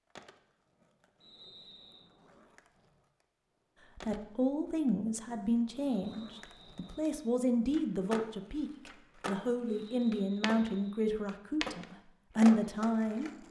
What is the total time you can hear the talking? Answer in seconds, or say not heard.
9 s.